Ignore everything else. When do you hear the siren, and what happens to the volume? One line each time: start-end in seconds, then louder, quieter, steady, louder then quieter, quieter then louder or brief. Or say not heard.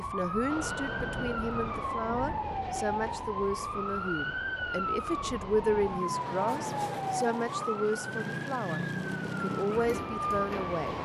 0.0-11.0 steady.